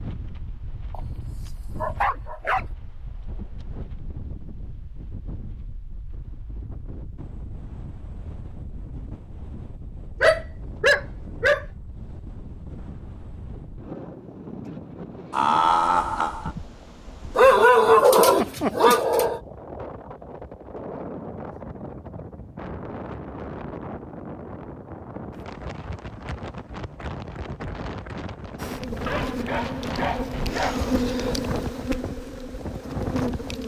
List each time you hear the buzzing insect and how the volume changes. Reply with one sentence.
You can hear the buzzing insect from 28.6 to 33.6 s, getting louder then quieter.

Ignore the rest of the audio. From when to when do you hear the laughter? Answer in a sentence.
You can hear the laughter from 15.3 to 16.6 s.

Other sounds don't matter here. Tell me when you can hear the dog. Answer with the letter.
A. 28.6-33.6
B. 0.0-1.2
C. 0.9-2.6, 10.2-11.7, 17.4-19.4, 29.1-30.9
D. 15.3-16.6
C.